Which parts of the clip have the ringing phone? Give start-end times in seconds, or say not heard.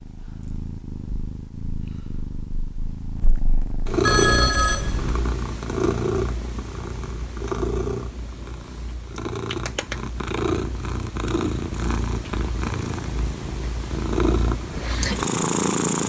4.0-5.2.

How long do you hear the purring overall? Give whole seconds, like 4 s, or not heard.
16 s.